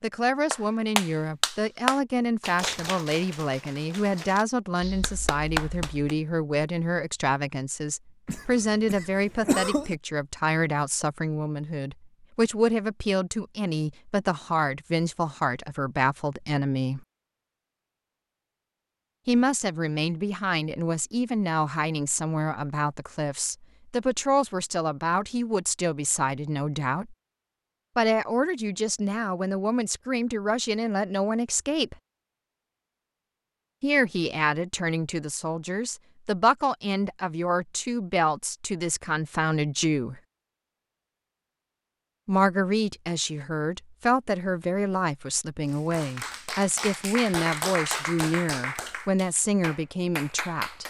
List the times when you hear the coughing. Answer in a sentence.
You can hear the coughing from 8.2 to 9.9 s.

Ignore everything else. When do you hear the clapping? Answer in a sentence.
You can hear the clapping from 0.5 to 6.2 s and from 45.6 to 50.8 s.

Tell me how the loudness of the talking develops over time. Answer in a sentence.
The volume of the talking stays about the same.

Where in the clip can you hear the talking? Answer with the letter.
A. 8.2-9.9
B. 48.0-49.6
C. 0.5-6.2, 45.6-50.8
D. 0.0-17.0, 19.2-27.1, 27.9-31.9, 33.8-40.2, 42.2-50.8
D.